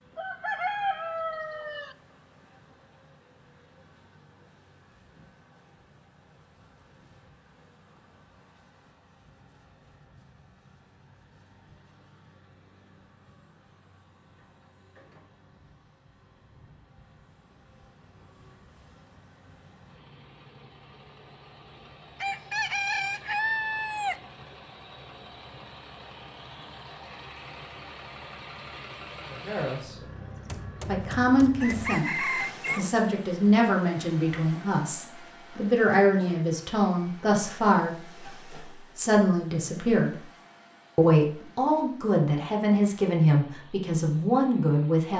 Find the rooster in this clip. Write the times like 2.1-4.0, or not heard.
0.1-1.9, 22.2-24.1, 31.6-32.9.